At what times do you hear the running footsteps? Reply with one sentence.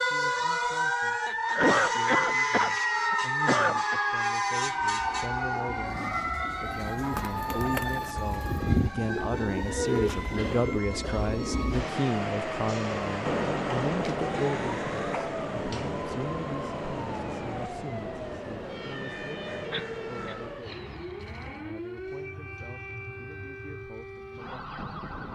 You can't hear the running footsteps here.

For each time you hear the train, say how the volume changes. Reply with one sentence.
The train can be heard from 4.5 to 20.9 s, getting louder then quieter.